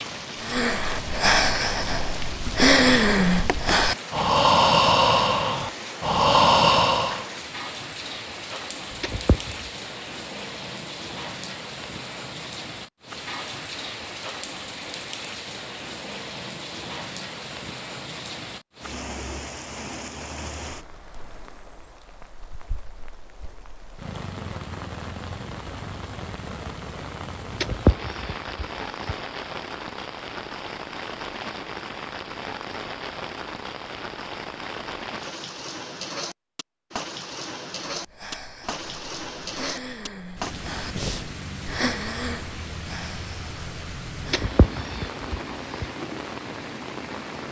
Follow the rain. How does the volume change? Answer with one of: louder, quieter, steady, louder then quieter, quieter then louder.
steady.